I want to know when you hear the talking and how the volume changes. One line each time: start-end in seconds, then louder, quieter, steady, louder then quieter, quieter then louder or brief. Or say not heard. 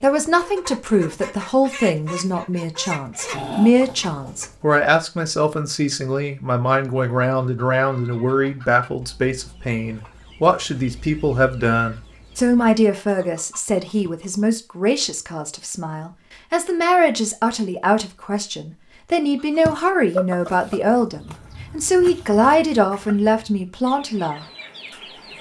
0.0-24.4 steady.